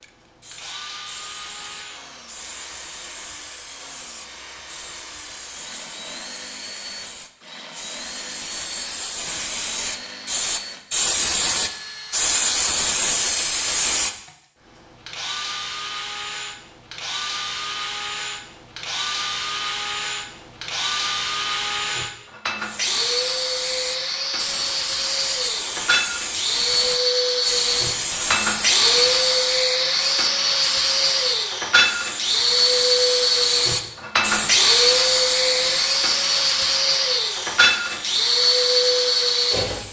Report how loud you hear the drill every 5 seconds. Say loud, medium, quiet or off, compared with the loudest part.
quiet, quiet, quiet, medium, medium, loud, loud, loud.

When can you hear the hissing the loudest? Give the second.
13 s.